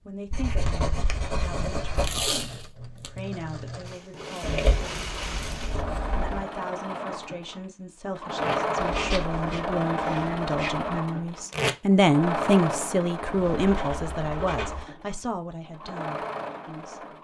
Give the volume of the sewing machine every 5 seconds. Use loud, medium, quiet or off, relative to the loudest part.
medium, loud, loud, medium.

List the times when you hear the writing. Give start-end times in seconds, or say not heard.
0.3-2.3, 4.4-6.5, 8.8-10.9, 13.2-14.8.